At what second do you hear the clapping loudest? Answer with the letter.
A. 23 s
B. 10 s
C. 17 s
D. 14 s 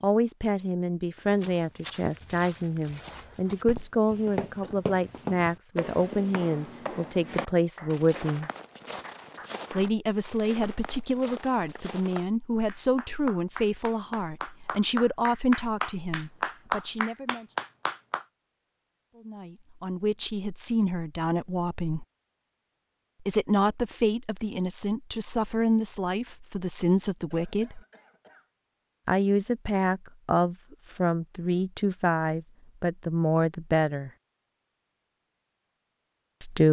C.